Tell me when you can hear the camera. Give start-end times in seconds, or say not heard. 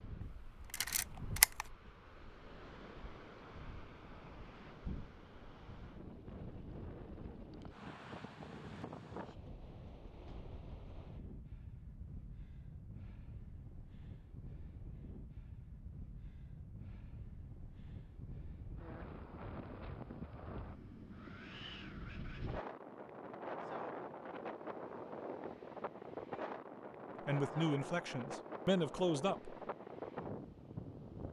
0.2-1.7.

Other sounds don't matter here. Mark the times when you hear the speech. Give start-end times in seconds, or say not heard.
27.2-29.6.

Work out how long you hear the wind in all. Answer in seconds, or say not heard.
31 s.